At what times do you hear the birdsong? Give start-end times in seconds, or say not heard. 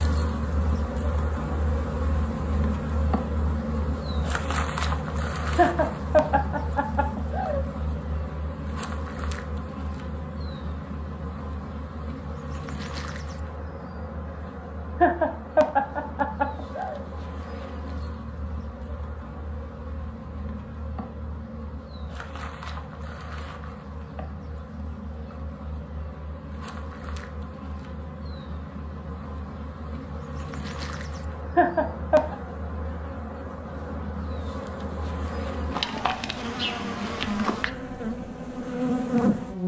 not heard.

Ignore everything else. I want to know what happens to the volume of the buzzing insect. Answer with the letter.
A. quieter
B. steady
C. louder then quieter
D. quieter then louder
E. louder
D.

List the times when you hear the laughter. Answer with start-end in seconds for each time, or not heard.
5.5-7.7, 15.0-17.0, 31.6-32.4.